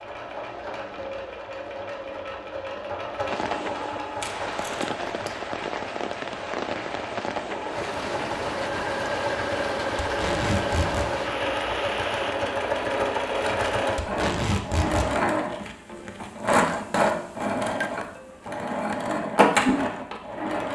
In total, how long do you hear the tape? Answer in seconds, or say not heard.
3 s.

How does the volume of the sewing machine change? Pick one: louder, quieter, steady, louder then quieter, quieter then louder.
louder.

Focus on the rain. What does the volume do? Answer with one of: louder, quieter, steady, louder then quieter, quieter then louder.
louder.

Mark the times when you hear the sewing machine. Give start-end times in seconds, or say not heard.
0.0-20.6.